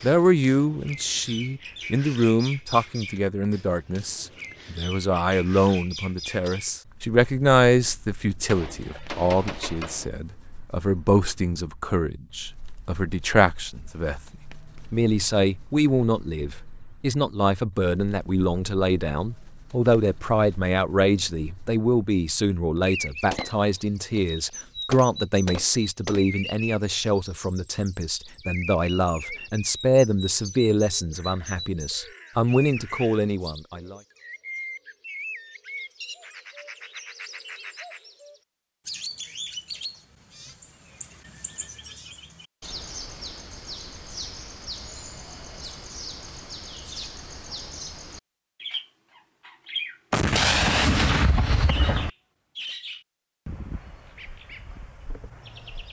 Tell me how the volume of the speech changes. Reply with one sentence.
The volume of the speech stays about the same.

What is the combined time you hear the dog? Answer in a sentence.
The dog can't be heard in this clip.